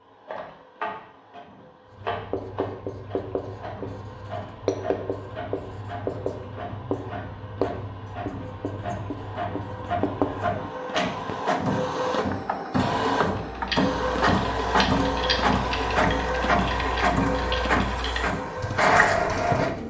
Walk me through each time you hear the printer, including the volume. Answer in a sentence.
The printer can be heard from 0.0 to 19.8 s, getting louder.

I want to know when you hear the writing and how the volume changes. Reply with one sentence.
You can hear the writing from 1.9 to 10.7 s, at a steady volume.